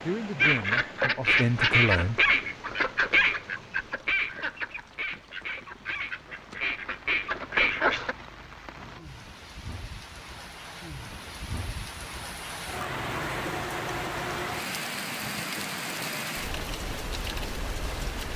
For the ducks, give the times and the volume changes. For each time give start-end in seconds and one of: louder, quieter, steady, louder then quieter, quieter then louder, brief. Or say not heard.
0.3-8.2 quieter then louder.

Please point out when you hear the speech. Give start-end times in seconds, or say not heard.
0.0-2.2.